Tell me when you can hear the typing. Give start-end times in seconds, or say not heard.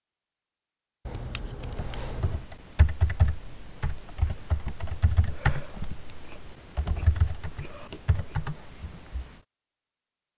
2.0-9.4.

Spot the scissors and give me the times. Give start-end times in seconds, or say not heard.
1.1-2.4, 6.2-8.3.